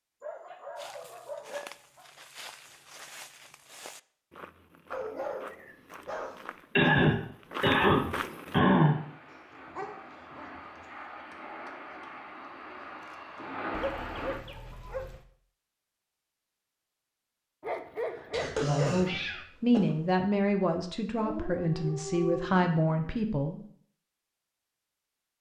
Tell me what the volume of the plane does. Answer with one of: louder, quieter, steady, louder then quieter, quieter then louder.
louder.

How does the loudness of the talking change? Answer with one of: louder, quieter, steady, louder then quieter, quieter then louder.
quieter then louder.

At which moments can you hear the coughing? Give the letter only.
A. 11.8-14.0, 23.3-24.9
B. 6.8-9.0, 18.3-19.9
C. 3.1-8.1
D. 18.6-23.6
B.